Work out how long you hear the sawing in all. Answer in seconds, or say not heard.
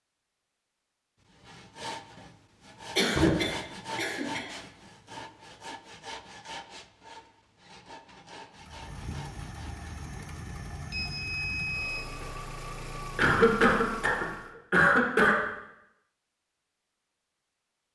9 s.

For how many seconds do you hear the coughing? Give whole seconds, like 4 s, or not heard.
4 s.